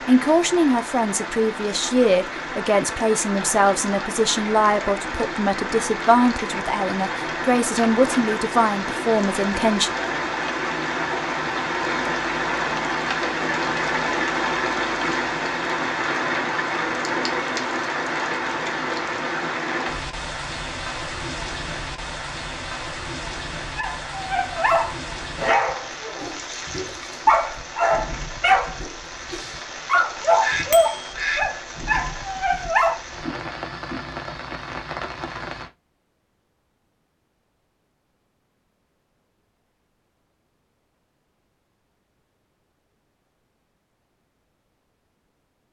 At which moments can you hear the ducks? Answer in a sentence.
You can hear the ducks from 30.4 to 32.0 s.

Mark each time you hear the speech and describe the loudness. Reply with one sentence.
You can hear the speech from 0.1 to 9.9 s, at a steady volume.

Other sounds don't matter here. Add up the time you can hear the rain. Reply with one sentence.
The rain can be heard for 36 seconds in total.